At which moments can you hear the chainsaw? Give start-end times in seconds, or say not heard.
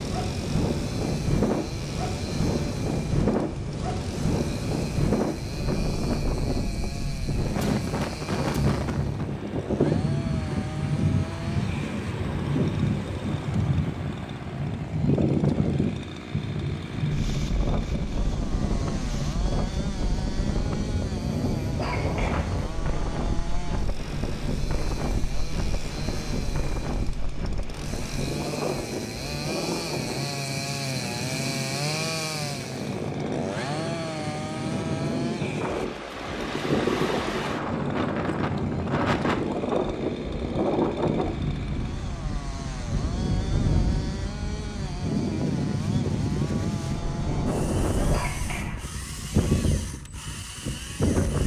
0.0-51.4.